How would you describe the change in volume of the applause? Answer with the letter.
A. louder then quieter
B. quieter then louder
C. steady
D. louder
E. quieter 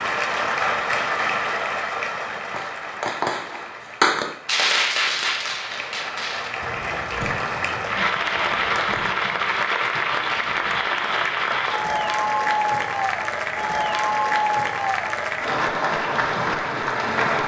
B.